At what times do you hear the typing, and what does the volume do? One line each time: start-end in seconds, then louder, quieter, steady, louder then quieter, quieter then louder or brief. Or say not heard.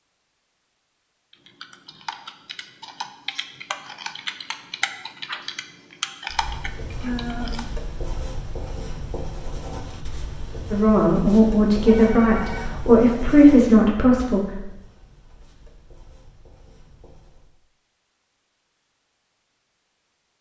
1.3-7.7 louder.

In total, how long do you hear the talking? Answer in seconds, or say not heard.
4 s.